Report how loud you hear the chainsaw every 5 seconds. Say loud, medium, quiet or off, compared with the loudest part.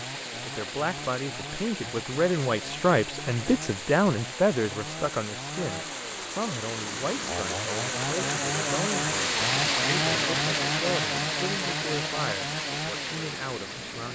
medium, loud, loud.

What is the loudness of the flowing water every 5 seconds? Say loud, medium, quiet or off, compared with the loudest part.
medium, loud, loud.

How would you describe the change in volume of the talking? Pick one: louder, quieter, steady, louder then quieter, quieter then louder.
quieter.